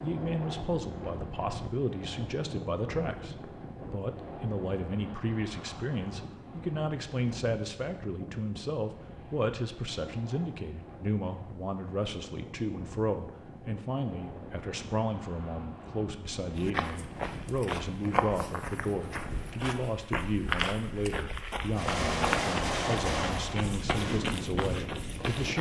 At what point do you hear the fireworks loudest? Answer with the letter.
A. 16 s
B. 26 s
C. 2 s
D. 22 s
D.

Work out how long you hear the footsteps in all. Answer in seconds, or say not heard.
9 s.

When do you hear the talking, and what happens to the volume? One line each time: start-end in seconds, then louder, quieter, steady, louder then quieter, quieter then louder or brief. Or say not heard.
0.0-25.5 steady.